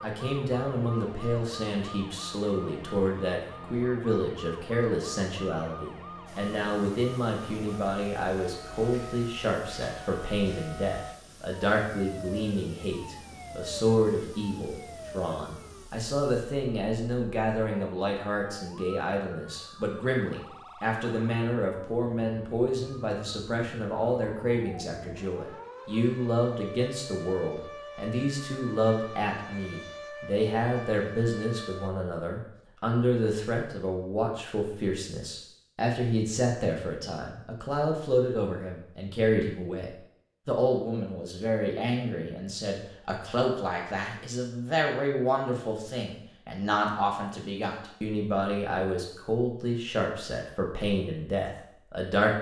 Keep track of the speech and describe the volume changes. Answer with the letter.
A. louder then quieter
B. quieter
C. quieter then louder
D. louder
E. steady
E.